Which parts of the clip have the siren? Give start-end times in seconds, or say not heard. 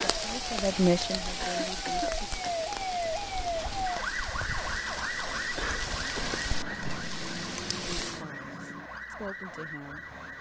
0.0-10.3.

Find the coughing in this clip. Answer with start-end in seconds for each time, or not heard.
1.4-2.6, 5.5-7.0.